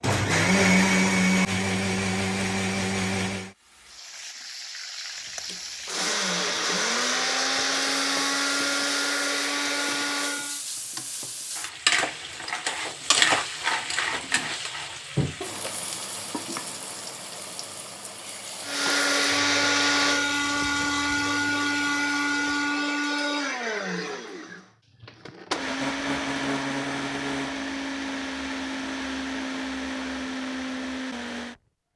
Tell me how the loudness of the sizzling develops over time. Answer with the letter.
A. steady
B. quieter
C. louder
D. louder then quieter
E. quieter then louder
D.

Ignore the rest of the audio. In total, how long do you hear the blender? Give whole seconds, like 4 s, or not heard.
22 s.